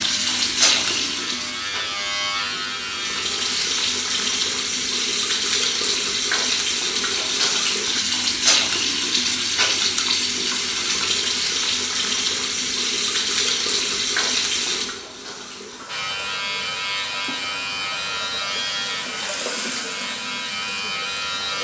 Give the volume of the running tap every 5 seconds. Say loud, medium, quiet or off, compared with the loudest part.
loud, loud, loud, quiet, quiet.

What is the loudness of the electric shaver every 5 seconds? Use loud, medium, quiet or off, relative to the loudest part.
loud, off, off, loud, loud.